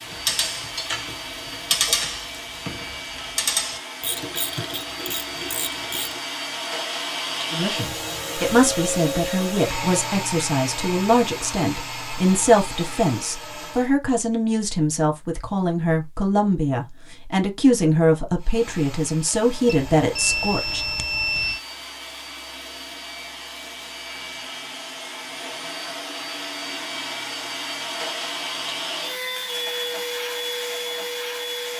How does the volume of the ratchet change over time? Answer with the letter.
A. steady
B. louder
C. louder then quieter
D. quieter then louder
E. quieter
C.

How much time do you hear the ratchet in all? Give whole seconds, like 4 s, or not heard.
6 s.